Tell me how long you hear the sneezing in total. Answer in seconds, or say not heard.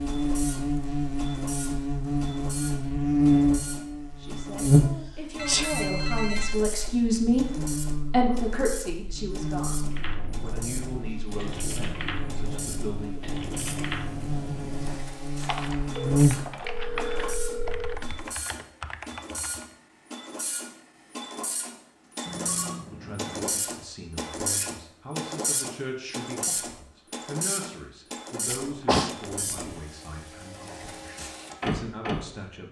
2 s.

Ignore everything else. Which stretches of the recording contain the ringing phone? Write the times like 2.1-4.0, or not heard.
5.3-6.7, 15.9-17.9, 22.2-23.5.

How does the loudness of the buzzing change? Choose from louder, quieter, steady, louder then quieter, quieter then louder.
quieter then louder.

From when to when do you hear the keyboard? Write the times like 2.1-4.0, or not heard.
9.8-19.6.